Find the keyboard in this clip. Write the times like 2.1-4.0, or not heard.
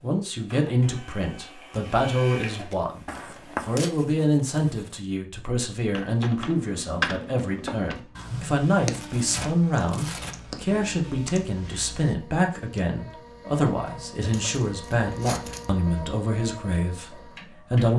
6.0-12.2.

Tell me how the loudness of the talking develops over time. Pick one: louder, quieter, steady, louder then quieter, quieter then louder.
steady.